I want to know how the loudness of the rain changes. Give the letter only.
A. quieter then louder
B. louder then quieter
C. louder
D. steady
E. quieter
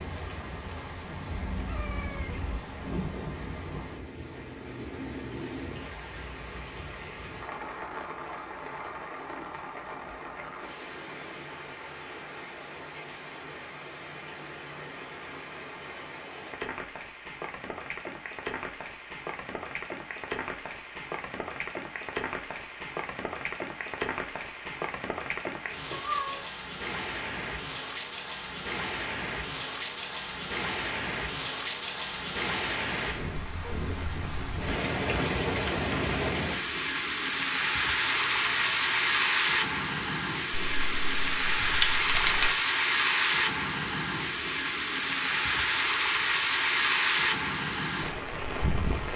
C.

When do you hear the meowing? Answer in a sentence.
You can hear the meowing from 1.3 to 2.6 s, from 25.9 to 26.5 s and from 38.0 to 39.3 s.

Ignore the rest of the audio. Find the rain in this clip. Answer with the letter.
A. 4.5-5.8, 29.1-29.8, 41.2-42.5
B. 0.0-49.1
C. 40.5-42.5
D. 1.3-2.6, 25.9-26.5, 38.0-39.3
B.